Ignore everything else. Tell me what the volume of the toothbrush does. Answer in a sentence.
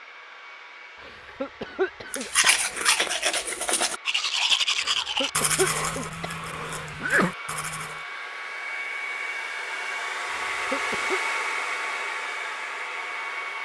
The volume of the toothbrush goes down.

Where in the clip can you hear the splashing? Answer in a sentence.
The splashing can't be heard in this clip.